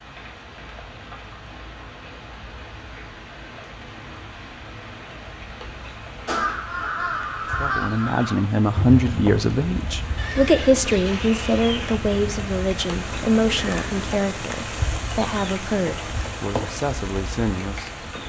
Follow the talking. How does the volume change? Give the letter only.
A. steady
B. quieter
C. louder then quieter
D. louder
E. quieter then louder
B.